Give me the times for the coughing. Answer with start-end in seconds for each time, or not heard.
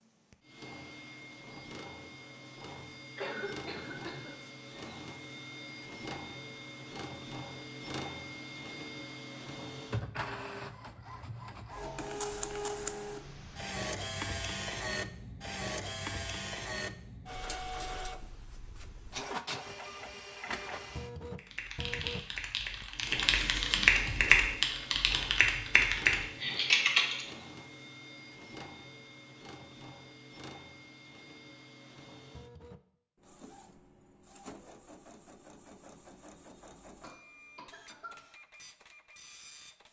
3.1-4.3, 37.0-38.2.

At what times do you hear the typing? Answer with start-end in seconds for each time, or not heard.
21.4-27.2.